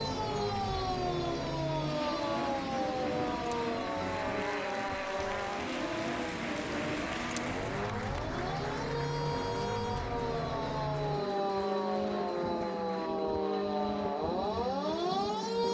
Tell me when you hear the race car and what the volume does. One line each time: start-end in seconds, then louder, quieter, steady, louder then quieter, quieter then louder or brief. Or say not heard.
0.0-15.6 steady.